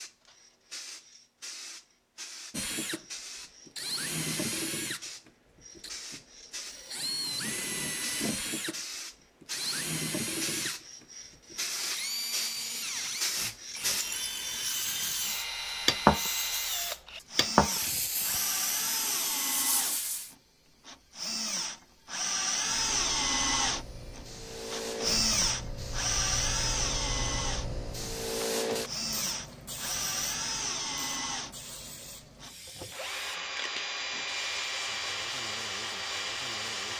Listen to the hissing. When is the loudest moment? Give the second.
16 s.